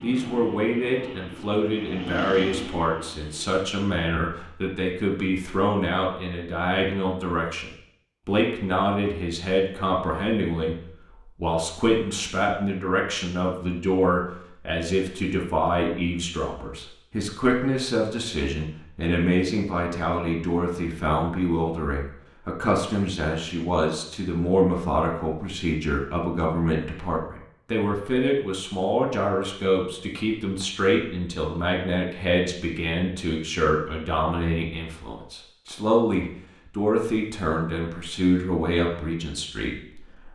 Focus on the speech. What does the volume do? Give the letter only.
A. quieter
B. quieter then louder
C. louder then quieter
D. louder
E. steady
E.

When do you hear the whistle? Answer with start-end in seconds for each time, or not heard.
not heard.